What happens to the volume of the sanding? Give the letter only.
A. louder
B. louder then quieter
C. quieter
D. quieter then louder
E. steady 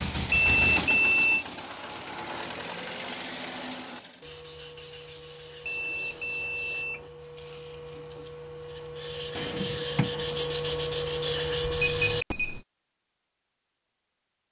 A.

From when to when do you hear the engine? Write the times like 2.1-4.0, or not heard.
0.0-4.3.